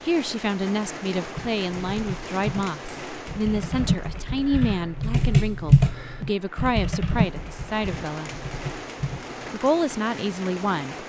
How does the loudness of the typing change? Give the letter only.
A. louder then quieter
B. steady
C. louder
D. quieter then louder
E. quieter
A.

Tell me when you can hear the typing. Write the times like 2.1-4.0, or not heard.
1.4-9.4.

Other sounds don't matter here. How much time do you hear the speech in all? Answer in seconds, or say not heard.
10 s.